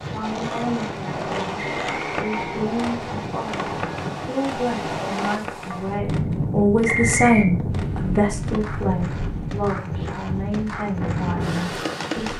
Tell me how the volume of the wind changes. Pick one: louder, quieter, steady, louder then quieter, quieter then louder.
steady.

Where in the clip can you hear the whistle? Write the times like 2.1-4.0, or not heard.
1.6-2.6, 6.8-7.5.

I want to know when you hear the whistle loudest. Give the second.
7 s.